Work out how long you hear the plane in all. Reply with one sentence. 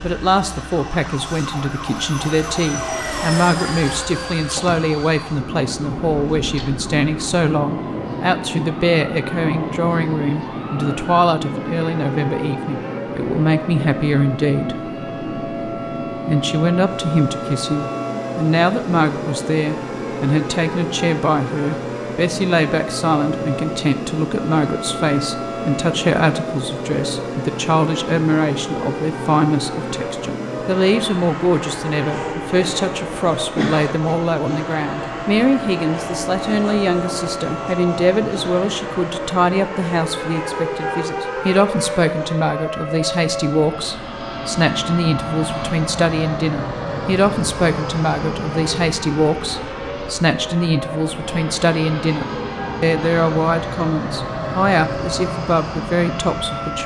You can hear the plane for 57 seconds altogether.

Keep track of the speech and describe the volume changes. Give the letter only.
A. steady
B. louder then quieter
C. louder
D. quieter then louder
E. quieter
A.